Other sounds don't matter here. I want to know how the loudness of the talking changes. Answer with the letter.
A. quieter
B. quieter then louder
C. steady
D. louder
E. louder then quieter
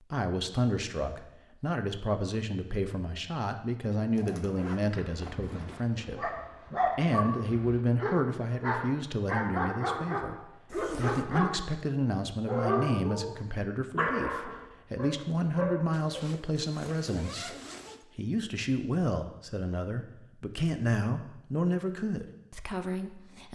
C.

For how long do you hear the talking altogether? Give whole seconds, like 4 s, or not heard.
23 s.